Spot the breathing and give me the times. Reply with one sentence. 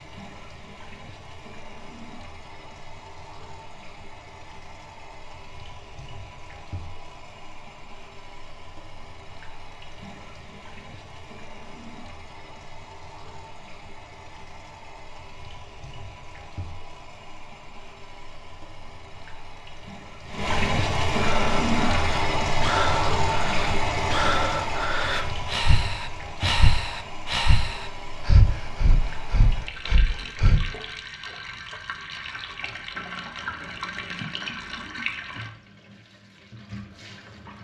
The breathing can be heard from 21.1 to 30.6 s.